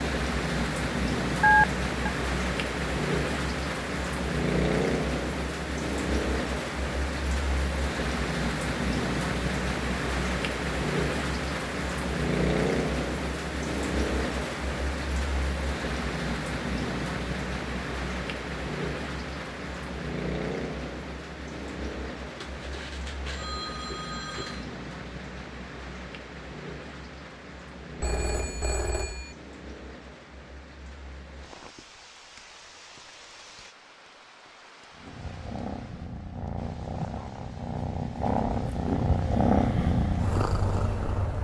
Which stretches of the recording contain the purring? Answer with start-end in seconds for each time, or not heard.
34.9-41.3.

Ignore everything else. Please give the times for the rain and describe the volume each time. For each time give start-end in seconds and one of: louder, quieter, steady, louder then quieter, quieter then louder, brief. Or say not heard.
0.0-41.3 quieter.